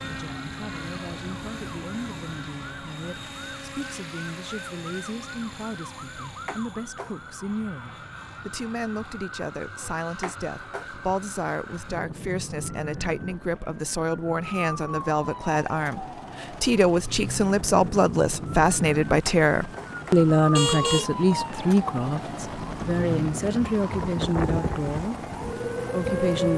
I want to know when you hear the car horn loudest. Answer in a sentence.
The volume of the car horn peaks at 21 seconds.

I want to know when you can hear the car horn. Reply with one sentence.
The car horn can be heard from 6.5 to 7.1 s, from 10.2 to 10.8 s and from 19.2 to 21.1 s.